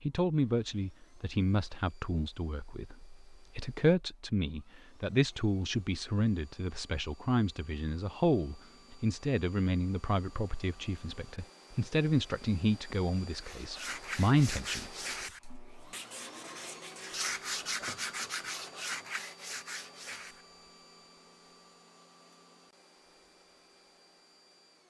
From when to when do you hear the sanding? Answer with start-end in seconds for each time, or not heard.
13.3-20.4.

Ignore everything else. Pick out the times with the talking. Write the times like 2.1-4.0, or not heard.
0.0-14.9.